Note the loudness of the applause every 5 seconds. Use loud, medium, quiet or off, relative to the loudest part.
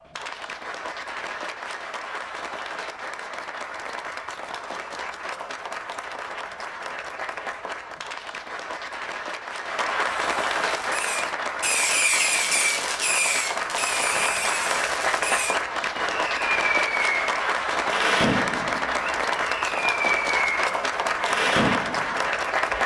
medium, medium, loud, loud, loud.